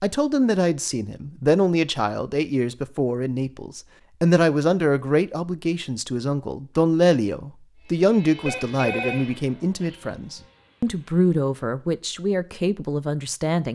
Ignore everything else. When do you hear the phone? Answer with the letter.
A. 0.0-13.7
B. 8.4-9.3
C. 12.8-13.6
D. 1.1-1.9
B.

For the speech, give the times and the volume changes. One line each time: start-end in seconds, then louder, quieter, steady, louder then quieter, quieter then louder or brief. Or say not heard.
0.0-13.7 steady.